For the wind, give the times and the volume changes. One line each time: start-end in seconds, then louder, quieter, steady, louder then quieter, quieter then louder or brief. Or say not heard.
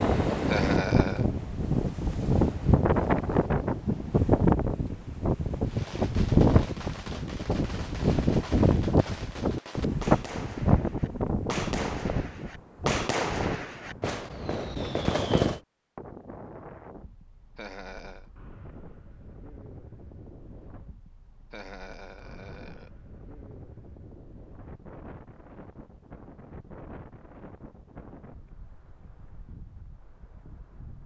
0.0-31.0 quieter.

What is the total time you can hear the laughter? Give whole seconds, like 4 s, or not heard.
3 s.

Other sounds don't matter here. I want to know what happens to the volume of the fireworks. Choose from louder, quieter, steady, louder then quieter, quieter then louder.
louder.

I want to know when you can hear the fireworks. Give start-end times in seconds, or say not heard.
5.7-15.6.